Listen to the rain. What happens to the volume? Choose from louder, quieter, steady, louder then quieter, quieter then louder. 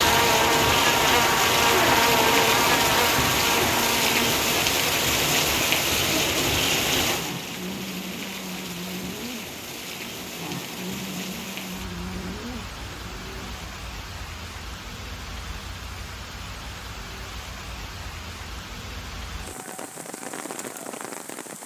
quieter.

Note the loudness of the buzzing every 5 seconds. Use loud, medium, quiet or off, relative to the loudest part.
loud, quiet, quiet, off, off.